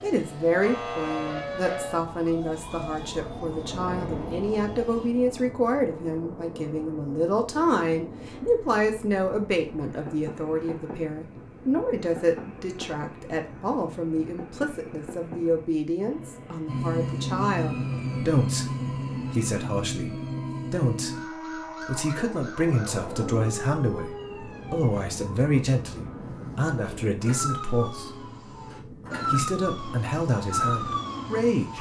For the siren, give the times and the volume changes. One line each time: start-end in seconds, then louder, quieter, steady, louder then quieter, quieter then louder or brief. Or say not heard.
0.0-5.1 quieter
16.6-31.7 quieter then louder.